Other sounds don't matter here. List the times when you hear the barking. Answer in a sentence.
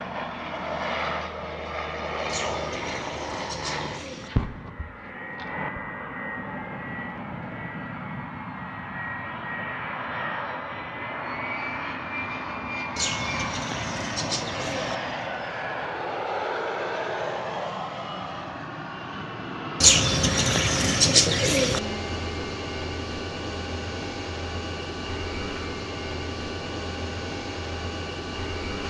The barking can't be heard in this clip.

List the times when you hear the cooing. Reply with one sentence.
You can hear the cooing from 2.2 to 4.3 s, from 12.9 to 14.9 s and from 19.8 to 21.8 s.